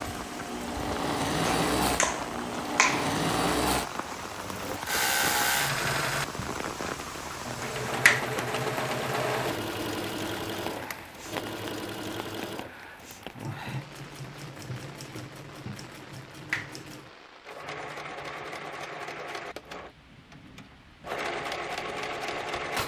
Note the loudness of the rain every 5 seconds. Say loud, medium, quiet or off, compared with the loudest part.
loud, loud, medium, quiet, quiet.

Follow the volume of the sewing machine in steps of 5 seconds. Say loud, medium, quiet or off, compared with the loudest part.
loud, loud, medium, medium, loud.